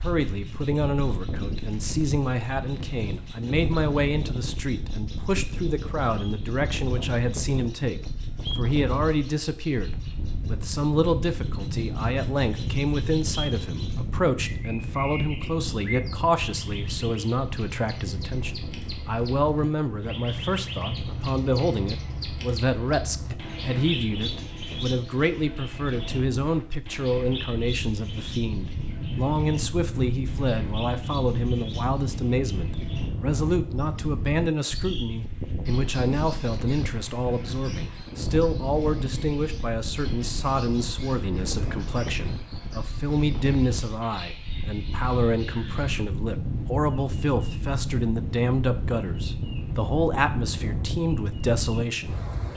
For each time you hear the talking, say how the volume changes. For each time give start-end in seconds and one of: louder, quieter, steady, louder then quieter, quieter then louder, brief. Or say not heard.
0.0-52.5 steady.